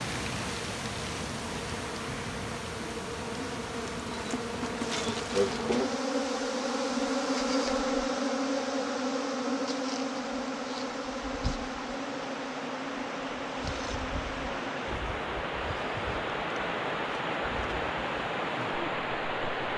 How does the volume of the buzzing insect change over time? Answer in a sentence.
The volume of the buzzing insect goes up, then down.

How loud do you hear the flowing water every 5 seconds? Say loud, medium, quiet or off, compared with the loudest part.
medium, quiet, medium, loud.